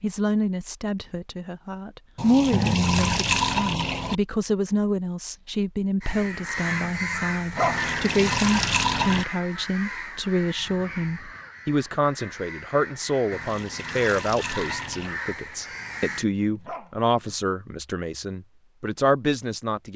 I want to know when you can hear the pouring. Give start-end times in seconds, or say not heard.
2.1-4.2, 7.6-9.2, 13.3-15.2.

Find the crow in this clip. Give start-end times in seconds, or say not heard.
6.0-16.2.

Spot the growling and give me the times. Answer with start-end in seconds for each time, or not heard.
2.5-3.2, 6.7-7.9, 15.8-17.4.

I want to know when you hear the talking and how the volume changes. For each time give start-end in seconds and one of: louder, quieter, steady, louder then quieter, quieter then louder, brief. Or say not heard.
0.0-19.9 steady.